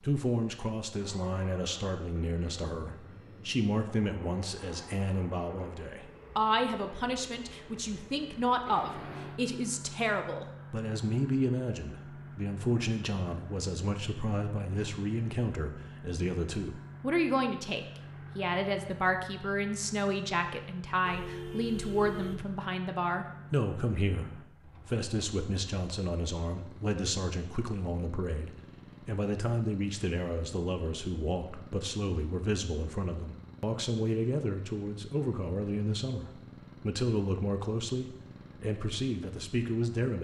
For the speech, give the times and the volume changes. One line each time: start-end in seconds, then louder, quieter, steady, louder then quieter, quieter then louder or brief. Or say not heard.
0.0-40.1 steady.